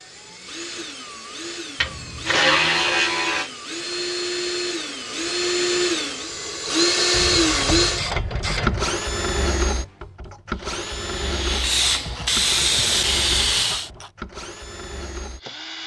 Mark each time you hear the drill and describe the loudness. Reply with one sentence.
The drill can be heard from 0.0 to 15.8 s, getting louder then quieter.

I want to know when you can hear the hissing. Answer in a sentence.
The hissing can be heard from 10.5 to 13.9 s.